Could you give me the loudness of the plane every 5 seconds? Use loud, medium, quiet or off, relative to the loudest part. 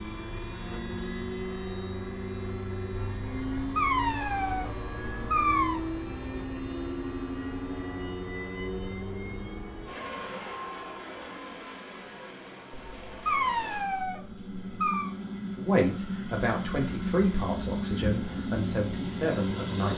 loud, loud, medium, loud.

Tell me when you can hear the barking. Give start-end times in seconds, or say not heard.
3.5-5.8, 12.7-15.1.